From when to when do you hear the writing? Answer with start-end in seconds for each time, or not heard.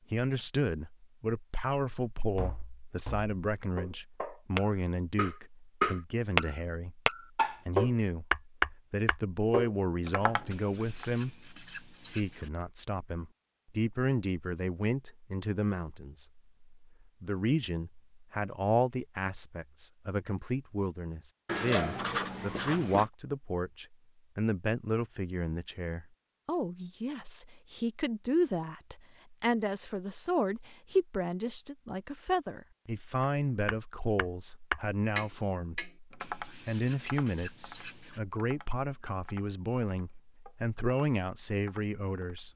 10.5-12.5, 21.4-23.1, 36.2-38.2.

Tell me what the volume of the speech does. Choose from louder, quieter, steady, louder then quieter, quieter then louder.
steady.